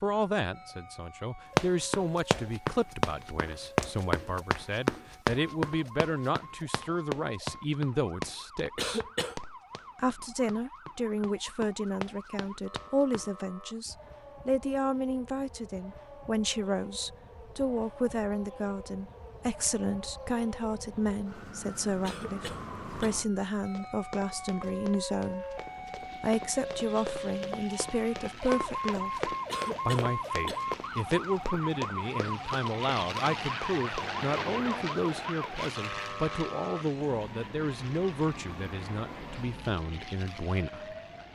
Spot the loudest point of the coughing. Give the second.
9 s.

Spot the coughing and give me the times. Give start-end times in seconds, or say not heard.
8.8-9.3, 22.0-23.1, 29.4-30.6.